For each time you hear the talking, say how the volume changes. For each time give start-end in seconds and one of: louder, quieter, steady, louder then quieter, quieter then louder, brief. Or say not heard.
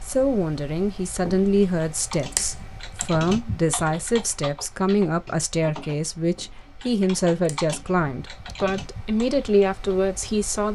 0.0-10.7 steady.